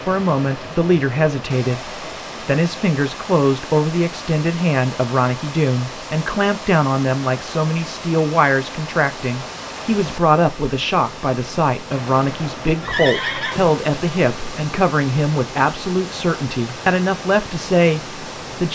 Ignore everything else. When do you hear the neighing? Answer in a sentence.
The neighing can be heard from 12.8 to 13.8 s.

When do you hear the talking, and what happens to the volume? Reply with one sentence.
You can hear the talking from 0.1 to 18.7 s, at a steady volume.